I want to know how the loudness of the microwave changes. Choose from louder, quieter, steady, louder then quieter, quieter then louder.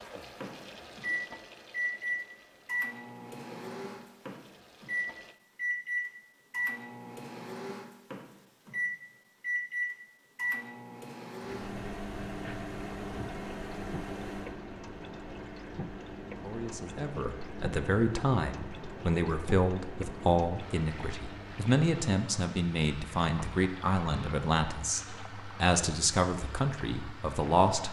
quieter.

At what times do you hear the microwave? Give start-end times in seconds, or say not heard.
0.0-21.9.